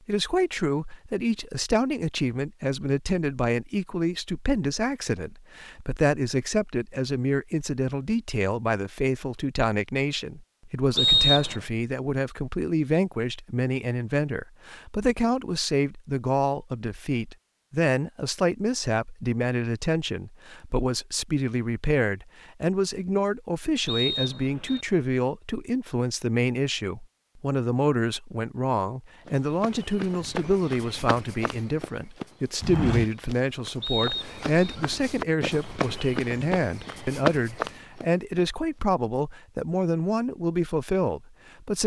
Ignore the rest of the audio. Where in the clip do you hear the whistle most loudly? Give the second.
11 s.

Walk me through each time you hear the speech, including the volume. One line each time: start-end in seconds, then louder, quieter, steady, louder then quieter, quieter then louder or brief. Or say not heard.
0.1-41.8 steady.